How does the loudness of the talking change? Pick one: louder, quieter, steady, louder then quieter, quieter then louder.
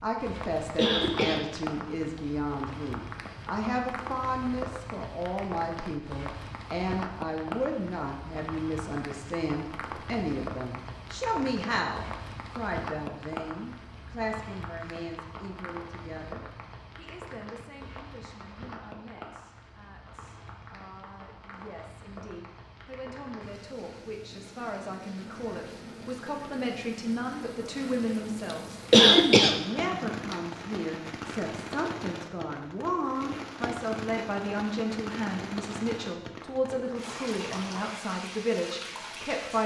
quieter then louder.